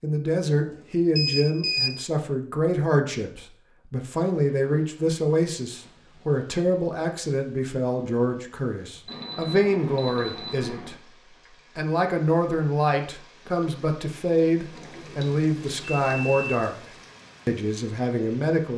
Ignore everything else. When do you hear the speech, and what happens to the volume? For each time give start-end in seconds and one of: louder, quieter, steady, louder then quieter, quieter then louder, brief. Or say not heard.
0.0-18.7 steady.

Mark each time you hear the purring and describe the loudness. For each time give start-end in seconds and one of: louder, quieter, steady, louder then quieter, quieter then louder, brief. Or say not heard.
not heard.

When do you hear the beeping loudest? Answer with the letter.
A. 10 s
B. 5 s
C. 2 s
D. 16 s
C.